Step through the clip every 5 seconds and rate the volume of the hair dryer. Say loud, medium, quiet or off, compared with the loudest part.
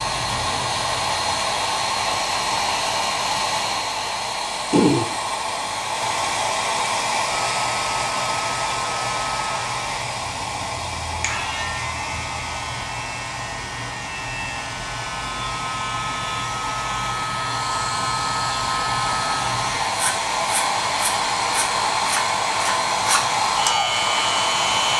loud, loud, medium, medium, loud.